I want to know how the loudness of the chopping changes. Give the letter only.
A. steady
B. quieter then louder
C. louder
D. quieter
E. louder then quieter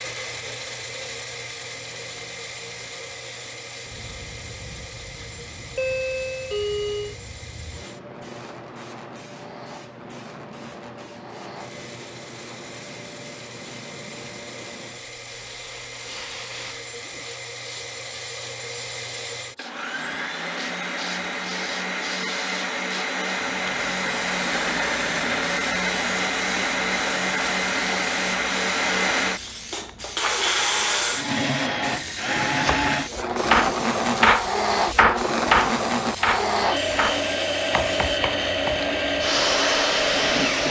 D.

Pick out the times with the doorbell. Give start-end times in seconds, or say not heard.
5.8-7.2.